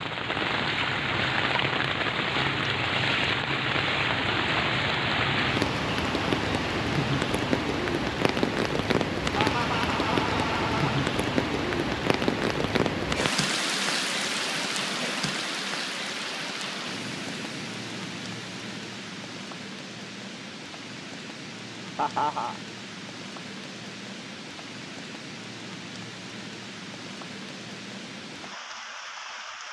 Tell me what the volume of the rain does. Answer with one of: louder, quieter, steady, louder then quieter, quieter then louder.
quieter.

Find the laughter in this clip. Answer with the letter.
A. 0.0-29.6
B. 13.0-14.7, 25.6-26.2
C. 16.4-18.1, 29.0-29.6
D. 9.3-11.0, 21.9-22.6
D.